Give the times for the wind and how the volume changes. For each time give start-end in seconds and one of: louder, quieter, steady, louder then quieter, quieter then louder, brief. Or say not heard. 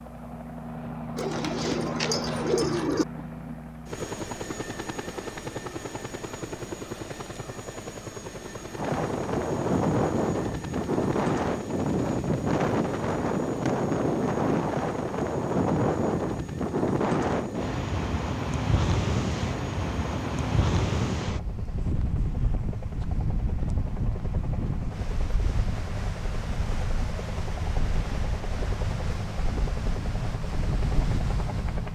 8.8-31.9 quieter.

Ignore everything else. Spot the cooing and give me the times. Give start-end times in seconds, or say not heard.
1.1-3.0.